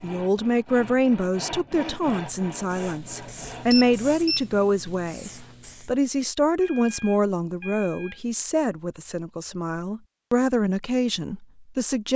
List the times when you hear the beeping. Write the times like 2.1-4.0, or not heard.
3.7-4.5, 6.6-8.2.